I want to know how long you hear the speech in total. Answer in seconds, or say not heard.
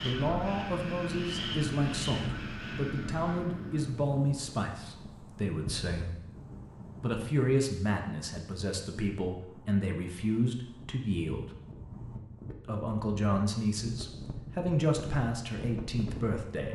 15 s.